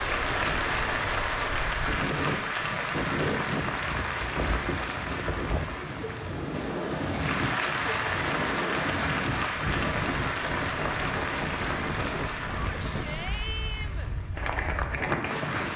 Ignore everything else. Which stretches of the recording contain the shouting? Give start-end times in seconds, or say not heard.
12.6-14.1.